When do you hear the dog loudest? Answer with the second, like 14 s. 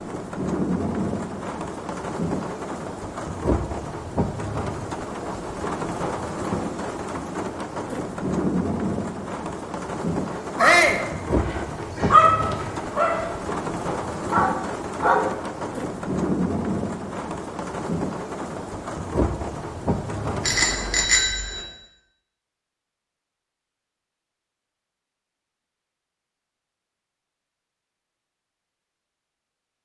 12 s.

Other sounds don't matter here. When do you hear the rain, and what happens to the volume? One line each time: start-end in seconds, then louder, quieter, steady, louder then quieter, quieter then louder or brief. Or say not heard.
0.0-21.4 steady.